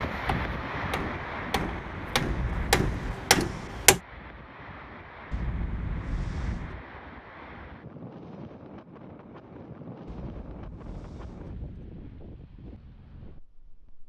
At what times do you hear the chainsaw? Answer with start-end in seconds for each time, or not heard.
not heard.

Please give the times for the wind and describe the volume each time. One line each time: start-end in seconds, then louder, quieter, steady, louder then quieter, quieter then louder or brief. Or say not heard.
0.0-14.0 quieter.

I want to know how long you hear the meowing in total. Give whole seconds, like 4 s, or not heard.
4 s.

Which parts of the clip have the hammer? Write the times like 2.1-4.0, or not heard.
0.1-4.0.